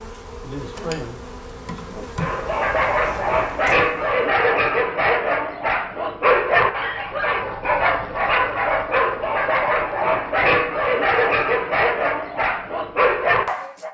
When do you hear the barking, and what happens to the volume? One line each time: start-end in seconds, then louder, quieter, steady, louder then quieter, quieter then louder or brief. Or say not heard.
2.1-13.8 steady.